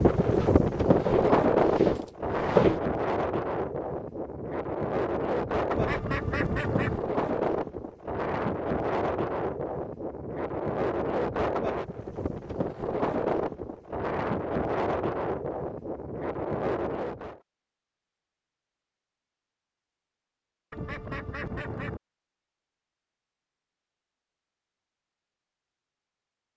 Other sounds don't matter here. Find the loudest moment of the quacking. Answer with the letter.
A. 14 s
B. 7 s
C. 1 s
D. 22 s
B.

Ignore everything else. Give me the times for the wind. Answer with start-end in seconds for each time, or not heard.
0.0-17.4.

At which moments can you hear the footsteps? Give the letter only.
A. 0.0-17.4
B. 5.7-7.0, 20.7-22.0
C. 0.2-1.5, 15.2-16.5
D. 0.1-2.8
D.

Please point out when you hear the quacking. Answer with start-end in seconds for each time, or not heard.
5.7-7.0, 20.7-22.0.